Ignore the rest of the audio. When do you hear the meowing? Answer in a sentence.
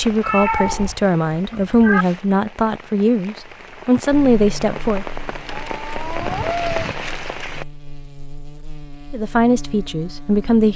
The meowing can be heard from 0.0 to 2.0 s and from 5.7 to 7.0 s.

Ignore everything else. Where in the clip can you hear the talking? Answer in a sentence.
The talking can be heard from 0.0 to 5.0 s and from 9.1 to 10.7 s.